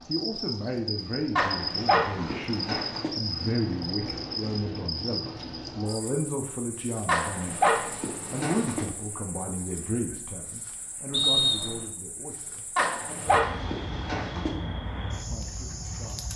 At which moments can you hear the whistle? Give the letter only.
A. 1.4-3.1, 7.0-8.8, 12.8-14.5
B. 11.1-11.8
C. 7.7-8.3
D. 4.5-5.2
B.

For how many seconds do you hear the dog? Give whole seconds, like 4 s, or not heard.
5 s.